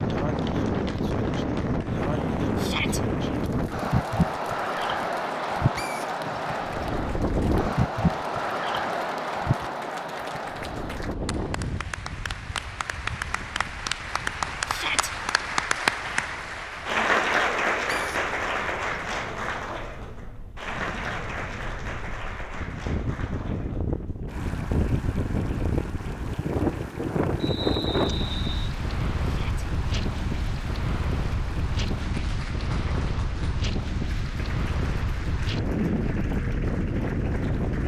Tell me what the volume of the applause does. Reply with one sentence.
The loudness of the applause goes up, then down.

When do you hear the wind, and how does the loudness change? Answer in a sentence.
The wind can be heard from 0.0 to 37.8 s, getting quieter then louder.